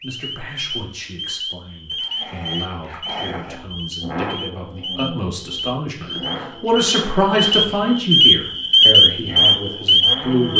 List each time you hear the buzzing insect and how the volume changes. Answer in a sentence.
The buzzing insect can't be heard in this clip.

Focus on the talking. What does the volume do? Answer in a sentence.
The volume of the talking goes up, then down.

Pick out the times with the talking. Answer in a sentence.
You can hear the talking from 0.0 to 10.5 s.